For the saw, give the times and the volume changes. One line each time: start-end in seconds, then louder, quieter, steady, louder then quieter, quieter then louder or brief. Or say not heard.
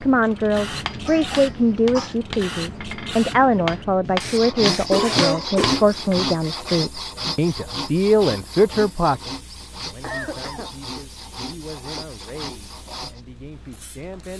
4.2-13.2 quieter.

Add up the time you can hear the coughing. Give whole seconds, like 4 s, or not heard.
3 s.